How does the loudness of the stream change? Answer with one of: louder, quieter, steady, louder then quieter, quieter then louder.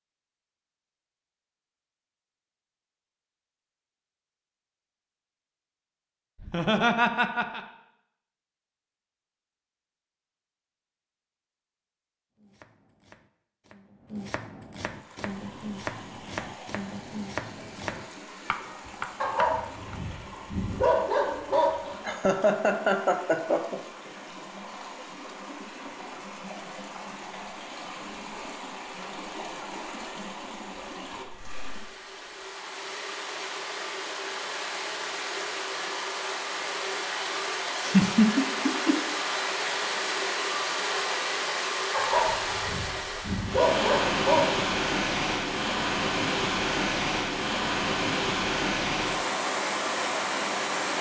louder.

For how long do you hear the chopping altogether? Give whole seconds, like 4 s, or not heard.
8 s.